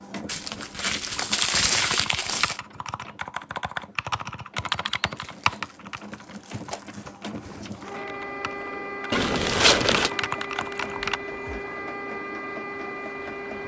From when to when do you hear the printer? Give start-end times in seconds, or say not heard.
0.0-13.6.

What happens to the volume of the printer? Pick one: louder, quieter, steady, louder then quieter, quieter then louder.
quieter then louder.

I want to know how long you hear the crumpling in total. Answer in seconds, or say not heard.
5 s.